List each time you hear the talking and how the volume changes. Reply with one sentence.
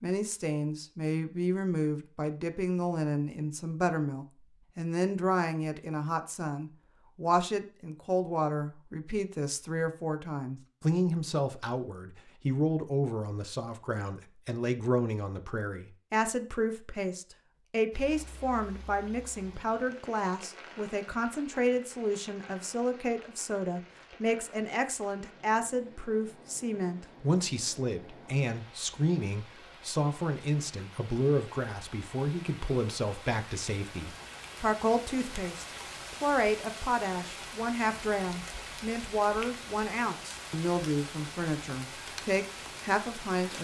The talking can be heard from 0.0 to 43.5 s, at a steady volume.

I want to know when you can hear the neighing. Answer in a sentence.
You can't hear the neighing here.